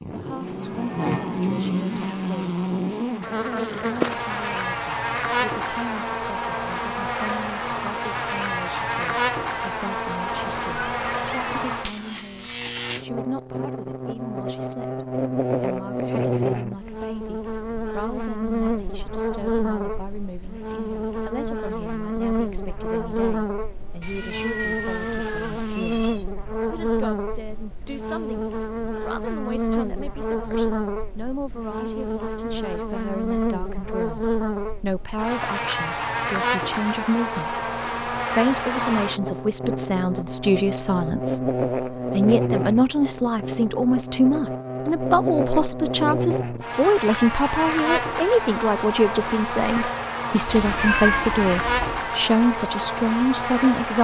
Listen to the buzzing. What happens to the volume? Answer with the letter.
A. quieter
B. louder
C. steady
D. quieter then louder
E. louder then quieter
C.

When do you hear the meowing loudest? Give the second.
51 s.